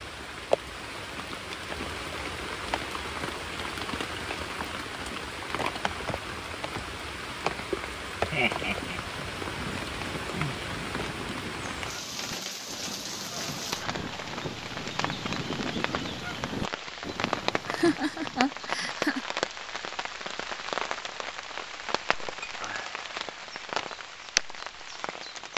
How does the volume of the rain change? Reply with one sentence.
The loudness of the rain stays about the same.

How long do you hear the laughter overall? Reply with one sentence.
You can hear the laughter for 2 seconds altogether.